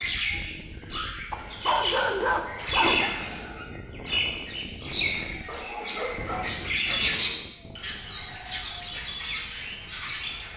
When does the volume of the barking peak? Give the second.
2 s.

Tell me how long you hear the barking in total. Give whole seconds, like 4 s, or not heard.
3 s.